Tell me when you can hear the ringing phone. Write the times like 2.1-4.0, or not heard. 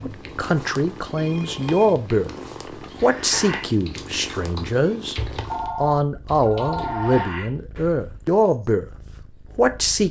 1.1-2.9, 5.5-7.3.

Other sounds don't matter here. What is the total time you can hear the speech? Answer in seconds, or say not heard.
8 s.